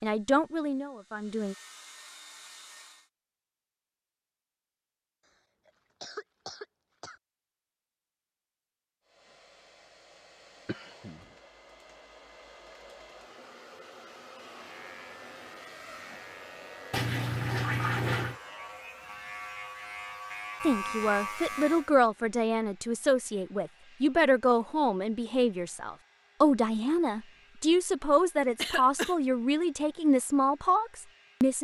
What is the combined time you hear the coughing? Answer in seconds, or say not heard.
3 s.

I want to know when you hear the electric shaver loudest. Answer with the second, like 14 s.
21 s.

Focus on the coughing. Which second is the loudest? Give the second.
29 s.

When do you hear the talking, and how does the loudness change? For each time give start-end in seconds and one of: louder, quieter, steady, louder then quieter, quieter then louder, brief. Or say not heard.
0.0-1.6 brief
20.6-31.5 steady.